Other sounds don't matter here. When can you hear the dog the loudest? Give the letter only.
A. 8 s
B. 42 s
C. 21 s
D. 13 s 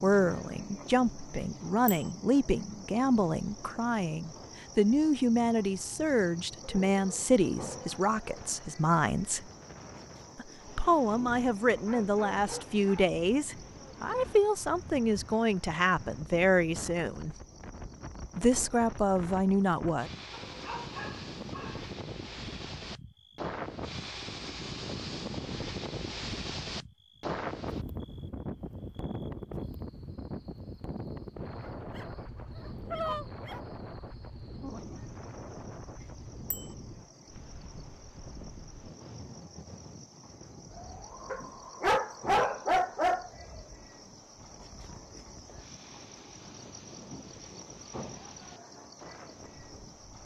B.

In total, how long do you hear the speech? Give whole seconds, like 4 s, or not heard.
18 s.